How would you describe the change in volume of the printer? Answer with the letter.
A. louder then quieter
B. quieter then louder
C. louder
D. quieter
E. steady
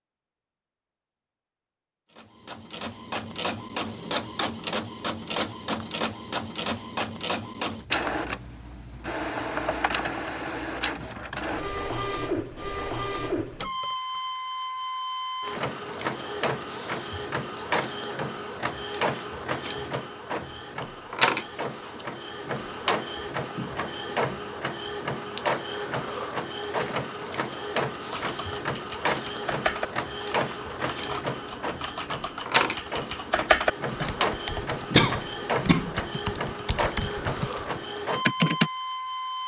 E.